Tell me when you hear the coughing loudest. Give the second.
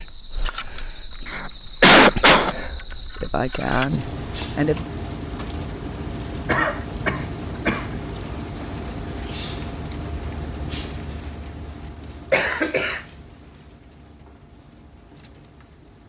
2 s.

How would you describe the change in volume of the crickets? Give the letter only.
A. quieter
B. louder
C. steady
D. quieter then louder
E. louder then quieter
A.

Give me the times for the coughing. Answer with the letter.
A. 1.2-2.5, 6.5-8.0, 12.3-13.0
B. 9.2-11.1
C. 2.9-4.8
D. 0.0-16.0
A.